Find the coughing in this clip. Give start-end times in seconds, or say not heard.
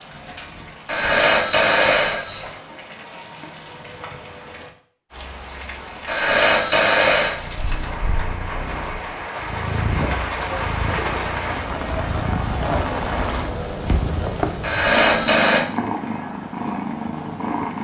not heard.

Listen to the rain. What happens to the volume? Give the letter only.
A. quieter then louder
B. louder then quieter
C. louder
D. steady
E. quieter
C.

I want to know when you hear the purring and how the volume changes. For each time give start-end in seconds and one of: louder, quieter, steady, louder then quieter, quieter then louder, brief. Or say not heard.
7.3-17.7 louder.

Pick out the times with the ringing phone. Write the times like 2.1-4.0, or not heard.
0.8-2.5, 6.0-7.3, 14.6-15.7.